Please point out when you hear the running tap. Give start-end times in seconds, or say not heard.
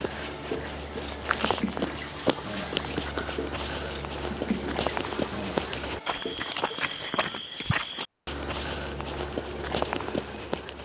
0.1-7.4.